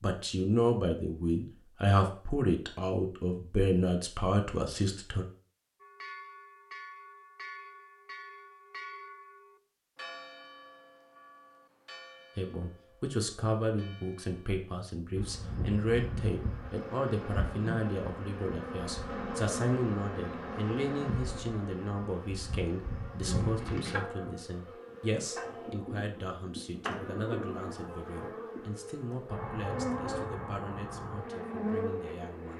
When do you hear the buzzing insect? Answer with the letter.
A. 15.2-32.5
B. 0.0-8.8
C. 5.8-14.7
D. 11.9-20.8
A.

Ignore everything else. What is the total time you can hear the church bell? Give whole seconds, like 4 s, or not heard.
9 s.